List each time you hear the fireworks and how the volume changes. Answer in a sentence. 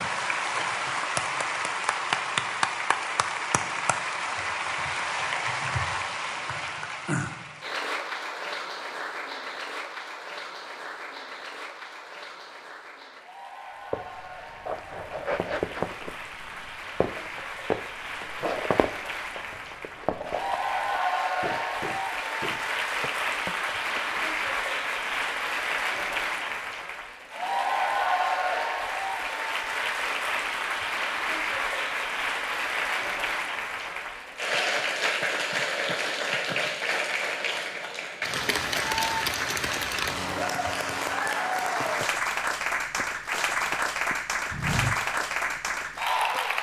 The fireworks can't be heard in this clip.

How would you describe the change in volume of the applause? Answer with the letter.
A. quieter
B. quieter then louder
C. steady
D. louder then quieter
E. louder
B.